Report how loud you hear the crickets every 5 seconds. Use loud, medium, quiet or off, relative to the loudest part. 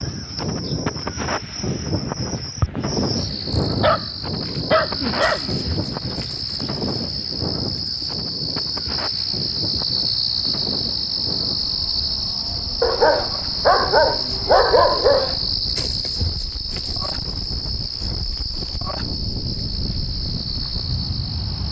medium, loud, loud, loud, medium.